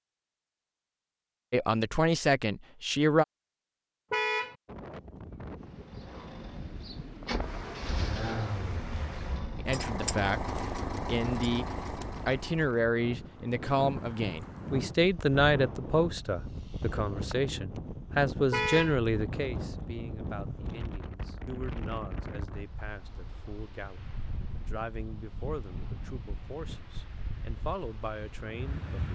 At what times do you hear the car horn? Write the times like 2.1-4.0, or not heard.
4.1-4.5, 18.5-18.9.